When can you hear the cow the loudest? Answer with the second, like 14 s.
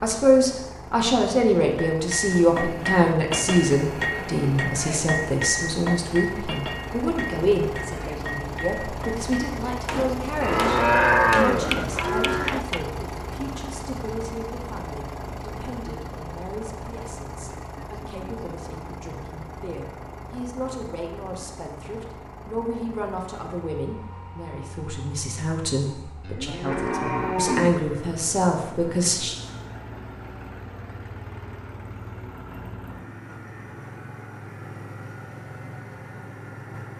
11 s.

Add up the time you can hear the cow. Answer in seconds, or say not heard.
4 s.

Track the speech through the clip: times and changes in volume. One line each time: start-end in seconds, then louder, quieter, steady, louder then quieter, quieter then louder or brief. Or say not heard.
0.0-29.4 quieter then louder.